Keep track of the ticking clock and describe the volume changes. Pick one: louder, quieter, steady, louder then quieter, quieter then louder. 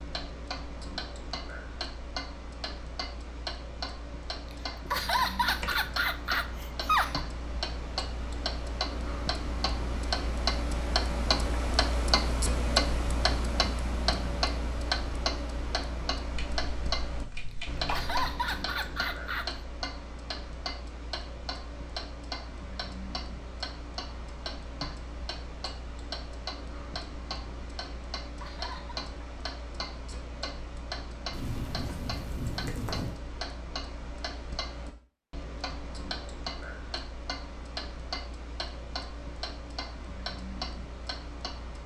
louder then quieter.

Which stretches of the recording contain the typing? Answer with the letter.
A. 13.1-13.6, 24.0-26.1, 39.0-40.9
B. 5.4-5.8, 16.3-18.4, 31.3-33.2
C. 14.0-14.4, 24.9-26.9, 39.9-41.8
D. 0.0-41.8
B.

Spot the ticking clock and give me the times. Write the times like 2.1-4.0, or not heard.
0.0-41.8.